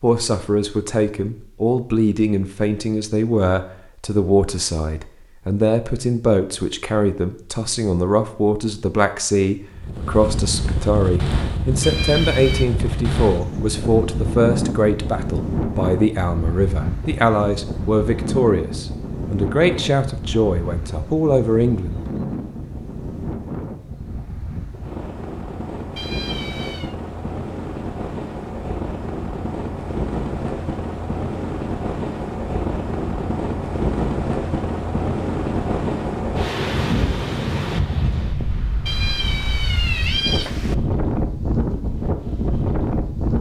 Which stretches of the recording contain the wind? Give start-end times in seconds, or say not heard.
9.7-43.3.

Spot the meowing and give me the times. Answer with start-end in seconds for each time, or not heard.
11.8-12.7, 25.9-26.9, 38.9-40.8.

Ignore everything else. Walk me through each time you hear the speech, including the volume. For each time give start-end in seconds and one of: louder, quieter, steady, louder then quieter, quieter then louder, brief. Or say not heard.
0.0-22.0 steady.